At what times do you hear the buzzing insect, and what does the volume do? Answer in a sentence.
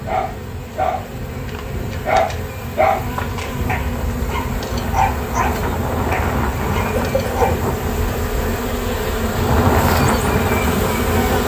You can hear the buzzing insect from 0.0 to 11.4 s, getting louder.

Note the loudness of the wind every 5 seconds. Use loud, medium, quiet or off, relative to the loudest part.
medium, loud, loud.